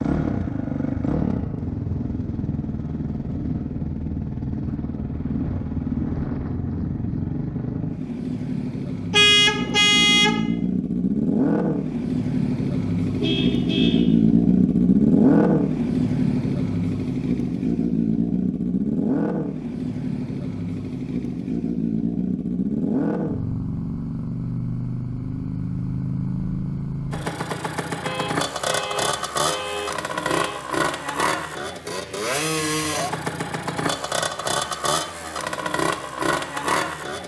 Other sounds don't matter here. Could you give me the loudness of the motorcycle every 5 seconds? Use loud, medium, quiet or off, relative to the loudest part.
medium, medium, loud, loud, medium, medium, medium, medium.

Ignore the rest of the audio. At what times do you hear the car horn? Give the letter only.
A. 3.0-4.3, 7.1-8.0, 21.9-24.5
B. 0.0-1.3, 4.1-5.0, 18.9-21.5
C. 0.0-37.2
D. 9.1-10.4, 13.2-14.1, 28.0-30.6
D.